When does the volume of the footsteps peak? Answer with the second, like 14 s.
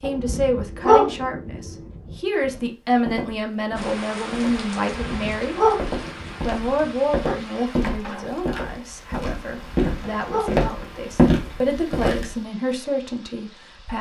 11 s.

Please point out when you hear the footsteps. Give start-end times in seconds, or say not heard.
2.4-12.3.